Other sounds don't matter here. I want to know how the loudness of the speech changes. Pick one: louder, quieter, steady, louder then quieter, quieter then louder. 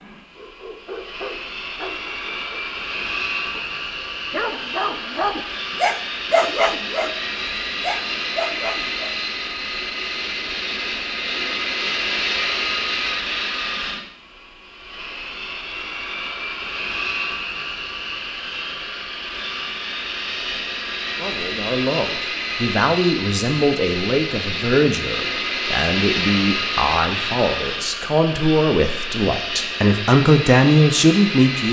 louder.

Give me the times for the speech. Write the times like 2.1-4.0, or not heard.
21.1-31.6.